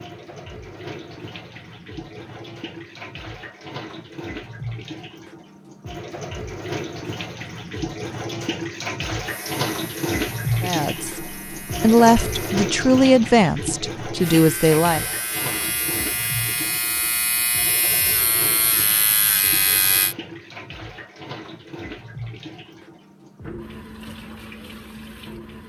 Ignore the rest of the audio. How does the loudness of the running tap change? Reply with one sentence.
The volume of the running tap goes up, then down.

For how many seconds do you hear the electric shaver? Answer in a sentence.
The electric shaver can be heard for 9 seconds in total.